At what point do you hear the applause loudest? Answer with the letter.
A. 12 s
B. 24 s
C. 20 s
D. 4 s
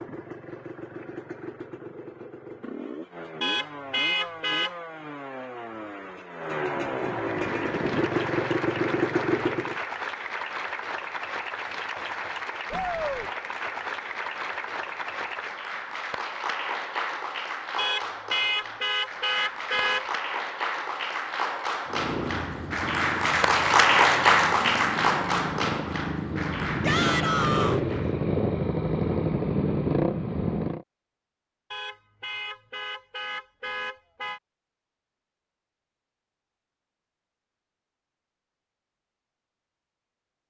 B.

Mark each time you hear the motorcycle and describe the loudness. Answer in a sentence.
You can hear the motorcycle from 0.0 to 9.8 s, getting louder; and from 21.9 to 30.9 s, getting louder.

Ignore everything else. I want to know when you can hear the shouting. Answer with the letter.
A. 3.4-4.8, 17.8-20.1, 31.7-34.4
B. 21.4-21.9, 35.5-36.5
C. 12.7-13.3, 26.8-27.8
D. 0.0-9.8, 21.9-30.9
C.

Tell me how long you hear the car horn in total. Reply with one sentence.
The car horn can be heard for 6 seconds in total.